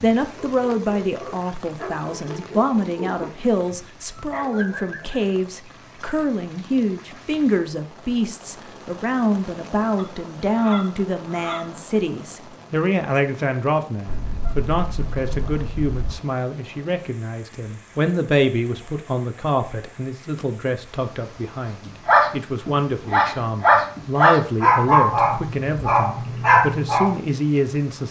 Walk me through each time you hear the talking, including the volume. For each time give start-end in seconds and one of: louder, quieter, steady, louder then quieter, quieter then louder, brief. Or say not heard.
0.0-28.0 steady.